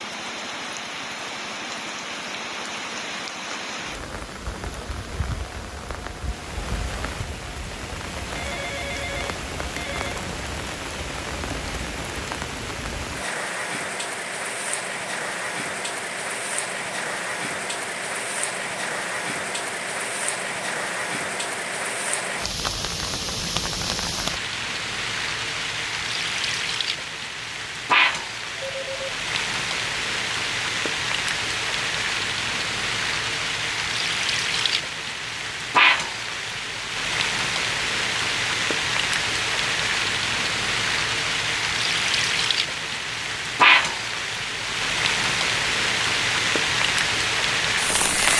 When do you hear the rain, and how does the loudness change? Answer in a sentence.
The rain can be heard from 0.0 to 48.3 s, getting louder.